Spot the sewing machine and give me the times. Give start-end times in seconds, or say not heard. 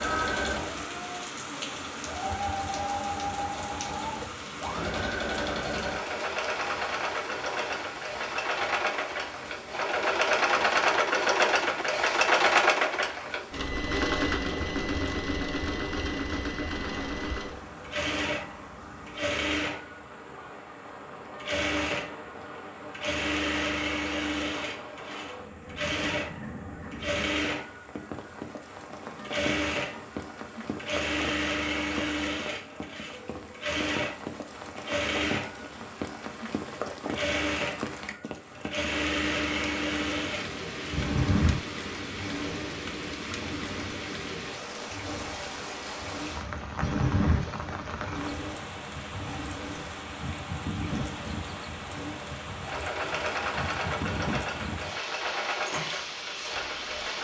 0.0-57.2.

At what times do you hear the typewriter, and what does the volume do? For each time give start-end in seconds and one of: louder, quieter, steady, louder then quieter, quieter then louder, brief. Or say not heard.
not heard.